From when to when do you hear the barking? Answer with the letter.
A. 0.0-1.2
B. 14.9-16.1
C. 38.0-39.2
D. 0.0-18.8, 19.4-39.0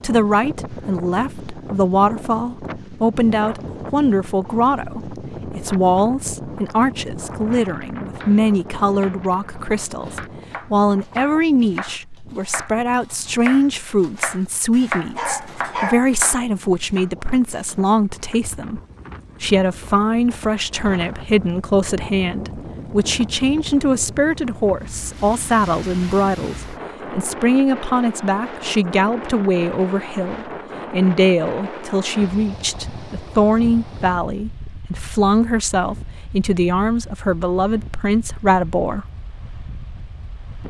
B.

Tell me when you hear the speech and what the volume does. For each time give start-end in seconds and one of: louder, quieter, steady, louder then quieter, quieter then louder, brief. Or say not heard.
0.0-18.8 steady
19.4-39.0 steady.